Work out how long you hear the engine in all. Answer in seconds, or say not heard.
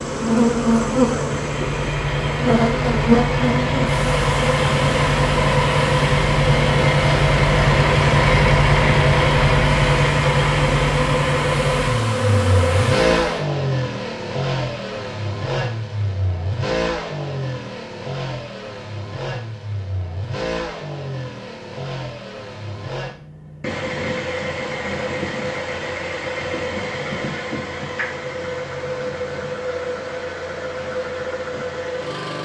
32 s.